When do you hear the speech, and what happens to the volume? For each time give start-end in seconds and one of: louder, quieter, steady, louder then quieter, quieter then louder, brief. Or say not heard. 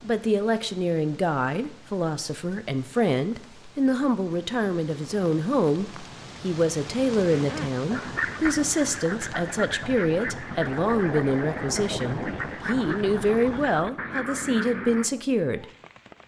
0.0-15.7 steady.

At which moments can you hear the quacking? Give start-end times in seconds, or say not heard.
7.3-15.1.